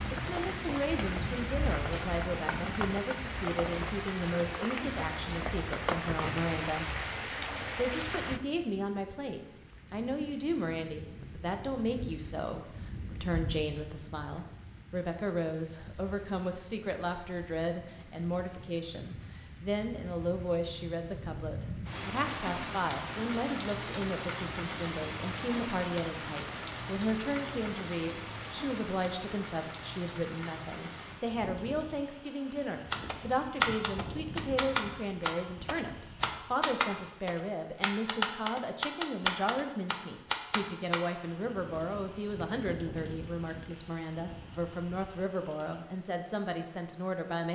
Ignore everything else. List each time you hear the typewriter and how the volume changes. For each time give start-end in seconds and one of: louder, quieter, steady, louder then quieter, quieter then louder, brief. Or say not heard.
32.9-41.0 steady.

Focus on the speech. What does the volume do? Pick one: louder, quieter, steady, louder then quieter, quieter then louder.
steady.